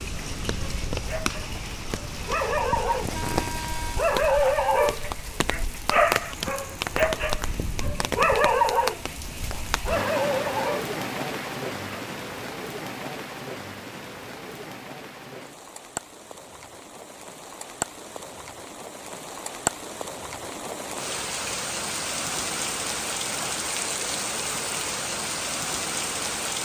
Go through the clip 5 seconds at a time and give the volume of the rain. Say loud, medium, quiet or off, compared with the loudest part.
loud, loud, loud, medium, loud, loud.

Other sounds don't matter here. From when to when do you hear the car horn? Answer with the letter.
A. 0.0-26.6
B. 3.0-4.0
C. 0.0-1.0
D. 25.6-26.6
B.